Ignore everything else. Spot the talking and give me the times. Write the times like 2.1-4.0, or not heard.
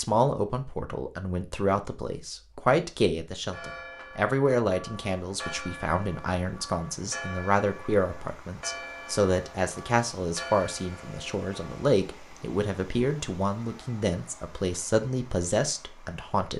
0.0-16.5.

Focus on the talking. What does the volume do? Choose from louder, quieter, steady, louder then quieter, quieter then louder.
steady.